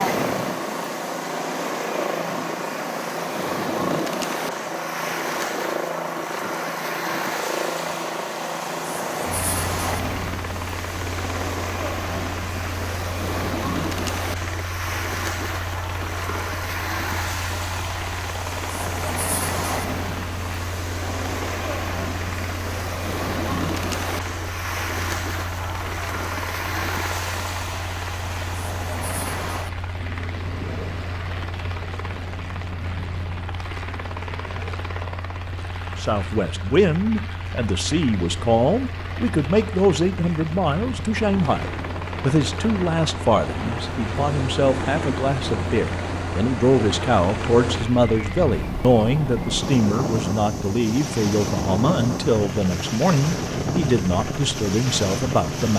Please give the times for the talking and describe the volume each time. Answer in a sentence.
The talking can be heard from 36.0 to 55.7 s, at a steady volume.